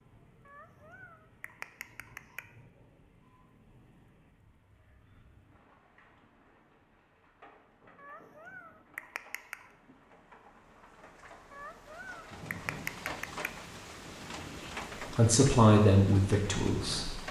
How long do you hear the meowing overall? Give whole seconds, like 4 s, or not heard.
6 s.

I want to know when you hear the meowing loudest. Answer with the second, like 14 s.
13 s.